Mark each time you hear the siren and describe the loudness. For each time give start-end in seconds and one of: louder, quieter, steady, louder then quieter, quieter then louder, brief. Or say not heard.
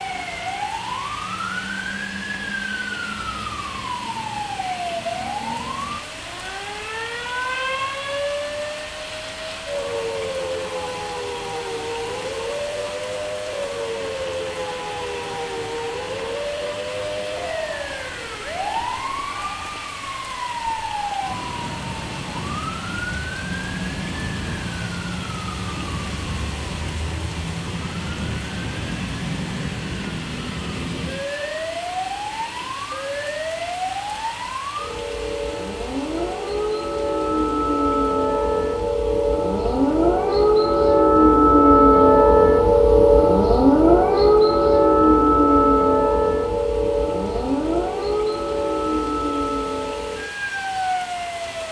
0.0-51.6 louder.